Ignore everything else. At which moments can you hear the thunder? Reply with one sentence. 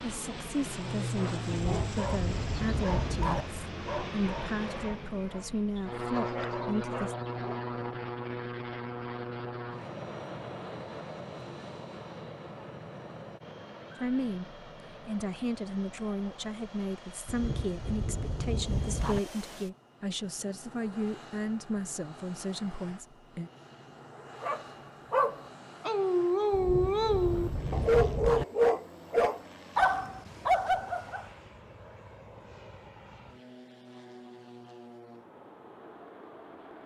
You can hear the thunder from 1.5 to 3.5 s, from 17.2 to 19.2 s and from 26.5 to 28.4 s.